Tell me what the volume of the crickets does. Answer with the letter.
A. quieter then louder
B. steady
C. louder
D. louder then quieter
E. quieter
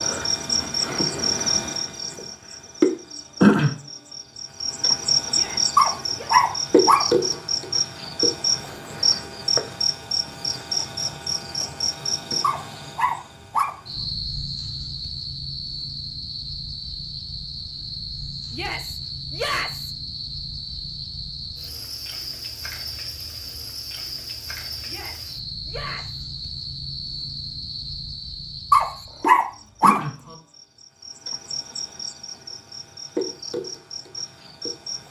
E.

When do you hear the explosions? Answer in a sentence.
The explosions can't be heard in this clip.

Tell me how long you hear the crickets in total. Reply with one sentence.
You can hear the crickets for 35 seconds altogether.